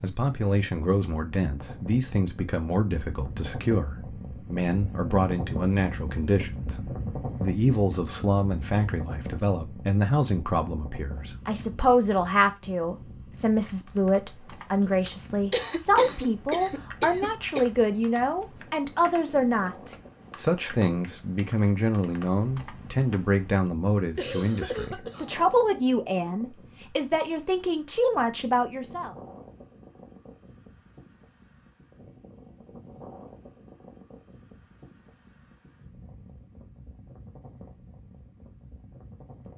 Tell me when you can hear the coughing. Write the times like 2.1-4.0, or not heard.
15.5-17.6, 24.1-25.4.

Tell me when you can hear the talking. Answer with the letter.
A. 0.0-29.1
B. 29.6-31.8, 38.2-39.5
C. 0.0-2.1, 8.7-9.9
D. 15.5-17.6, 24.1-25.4
A.